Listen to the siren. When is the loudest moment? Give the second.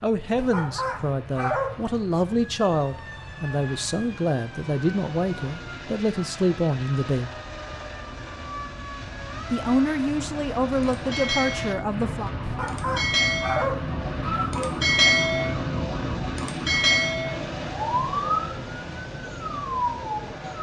15 s.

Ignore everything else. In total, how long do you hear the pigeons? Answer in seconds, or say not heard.
not heard.